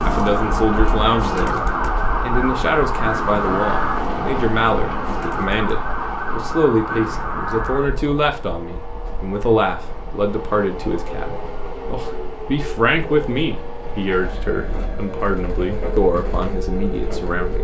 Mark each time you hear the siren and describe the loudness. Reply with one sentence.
The siren can be heard from 0.0 to 17.5 s, getting quieter.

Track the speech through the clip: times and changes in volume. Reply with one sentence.
The speech can be heard briefly from 0.0 to 1.6 s; and from 2.2 to 17.5 s, at a steady volume.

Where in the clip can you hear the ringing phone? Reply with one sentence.
You can't hear the ringing phone here.